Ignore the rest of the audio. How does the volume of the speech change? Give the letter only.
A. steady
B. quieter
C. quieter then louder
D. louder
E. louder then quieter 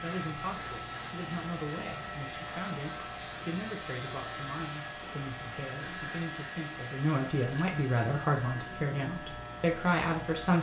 D.